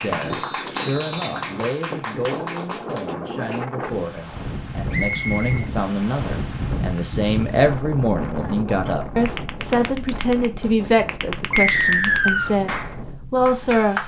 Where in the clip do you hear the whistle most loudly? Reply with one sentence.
The loudest moment of the whistle is at 12 seconds.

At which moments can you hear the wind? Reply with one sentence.
You can hear the wind from 0.1 to 14.0 s.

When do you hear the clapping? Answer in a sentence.
The clapping can be heard from 0.0 to 3.6 s and from 9.2 to 14.0 s.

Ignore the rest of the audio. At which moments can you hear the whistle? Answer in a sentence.
The whistle can be heard from 0.3 to 1.7 s, from 4.9 to 5.5 s and from 11.5 to 12.6 s.